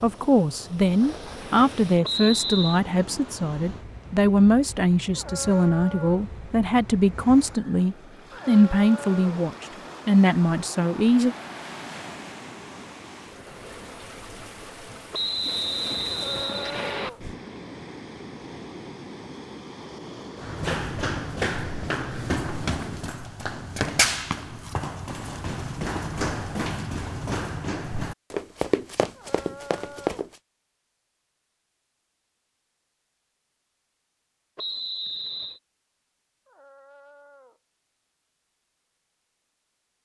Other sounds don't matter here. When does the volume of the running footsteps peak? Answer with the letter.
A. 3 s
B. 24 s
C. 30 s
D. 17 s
B.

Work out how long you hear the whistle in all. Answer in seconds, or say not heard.
4 s.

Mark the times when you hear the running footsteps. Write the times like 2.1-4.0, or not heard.
20.4-30.3.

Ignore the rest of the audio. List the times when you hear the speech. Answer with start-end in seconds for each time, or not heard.
0.0-11.3.